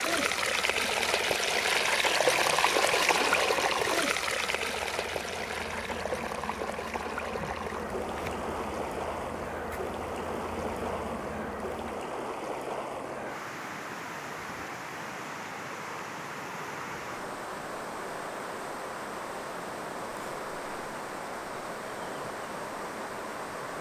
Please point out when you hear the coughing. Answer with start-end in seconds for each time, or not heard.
not heard.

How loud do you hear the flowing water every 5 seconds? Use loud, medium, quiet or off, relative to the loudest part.
loud, medium, medium, medium, medium.